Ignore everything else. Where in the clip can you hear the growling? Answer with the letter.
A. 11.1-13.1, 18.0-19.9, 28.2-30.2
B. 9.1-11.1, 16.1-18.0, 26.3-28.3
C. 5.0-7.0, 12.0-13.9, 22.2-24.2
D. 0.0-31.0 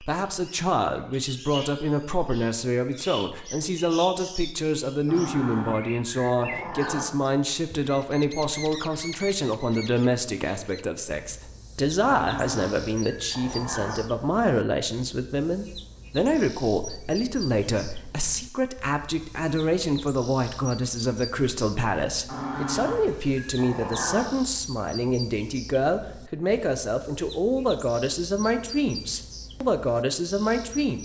C.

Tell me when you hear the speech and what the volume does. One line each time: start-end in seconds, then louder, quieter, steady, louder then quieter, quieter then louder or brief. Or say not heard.
0.0-31.0 steady.